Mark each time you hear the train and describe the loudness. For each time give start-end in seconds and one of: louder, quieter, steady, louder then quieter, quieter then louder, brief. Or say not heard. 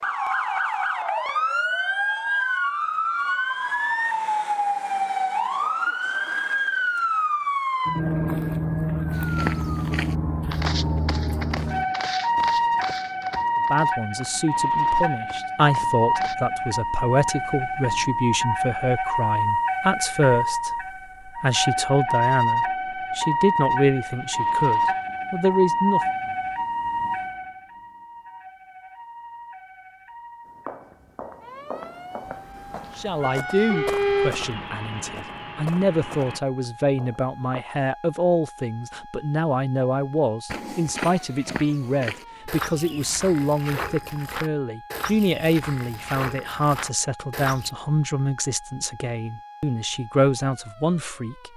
32.2-36.4 louder then quieter.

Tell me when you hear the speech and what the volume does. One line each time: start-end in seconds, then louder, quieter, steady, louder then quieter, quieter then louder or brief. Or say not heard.
13.7-26.0 steady
33.0-51.5 steady.